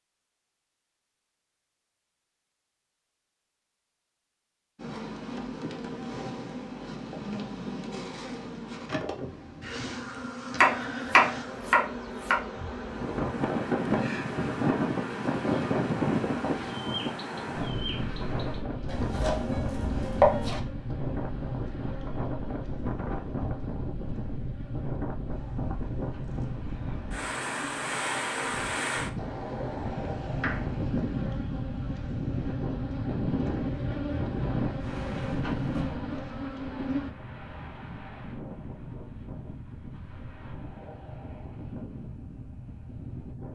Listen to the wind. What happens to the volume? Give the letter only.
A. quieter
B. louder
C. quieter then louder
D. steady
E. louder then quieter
A.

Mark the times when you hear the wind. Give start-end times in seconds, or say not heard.
12.8-43.5.